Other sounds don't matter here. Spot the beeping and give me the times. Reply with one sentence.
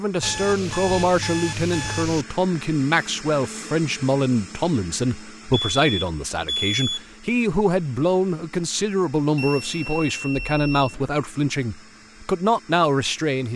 The beeping can be heard from 0.2 to 2.2 s, from 5.5 to 7.0 s and from 9.3 to 10.9 s.